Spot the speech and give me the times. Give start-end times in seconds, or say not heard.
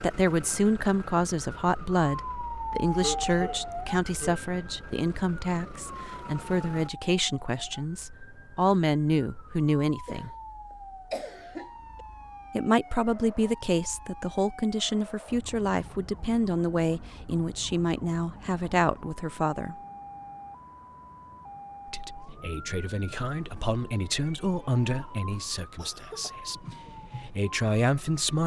0.0-10.3, 12.5-19.8, 21.9-28.4.